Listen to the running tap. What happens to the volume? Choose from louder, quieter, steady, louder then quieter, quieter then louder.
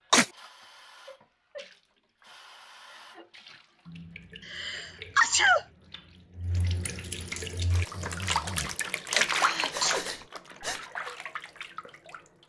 louder then quieter.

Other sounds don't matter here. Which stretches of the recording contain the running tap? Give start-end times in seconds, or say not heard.
0.0-12.4.